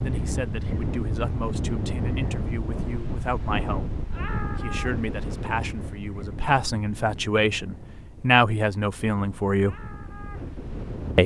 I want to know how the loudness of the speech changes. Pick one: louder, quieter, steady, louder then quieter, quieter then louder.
louder.